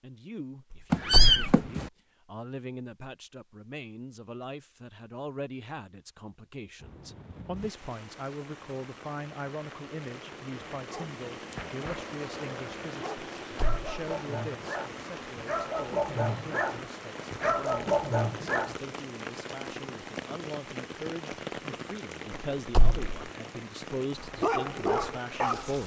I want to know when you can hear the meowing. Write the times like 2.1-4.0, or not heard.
0.9-1.9.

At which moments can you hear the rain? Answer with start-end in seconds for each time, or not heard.
6.8-25.8.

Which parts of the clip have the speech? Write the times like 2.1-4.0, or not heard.
0.0-25.8.